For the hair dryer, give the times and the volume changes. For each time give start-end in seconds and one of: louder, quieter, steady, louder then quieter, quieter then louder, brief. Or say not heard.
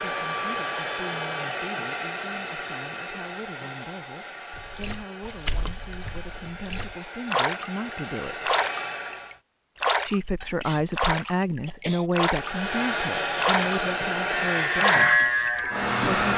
0.0-9.4 quieter then louder
12.2-16.3 quieter.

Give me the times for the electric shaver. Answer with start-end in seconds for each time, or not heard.
14.5-16.3.